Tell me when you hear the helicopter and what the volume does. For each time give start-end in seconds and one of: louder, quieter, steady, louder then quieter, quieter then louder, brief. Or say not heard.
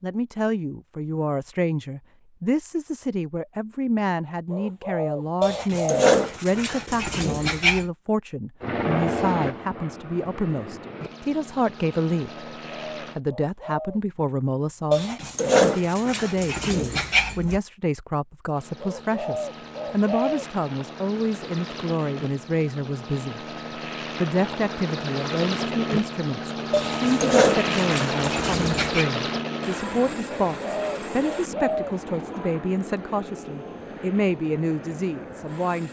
8.6-13.2 quieter
18.6-35.8 louder then quieter.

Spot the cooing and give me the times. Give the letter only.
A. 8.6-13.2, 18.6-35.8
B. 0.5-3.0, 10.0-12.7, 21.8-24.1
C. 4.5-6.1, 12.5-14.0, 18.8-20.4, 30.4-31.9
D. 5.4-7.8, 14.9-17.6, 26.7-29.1
C.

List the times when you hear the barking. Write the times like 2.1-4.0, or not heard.
5.4-7.8, 14.9-17.6, 26.7-29.1.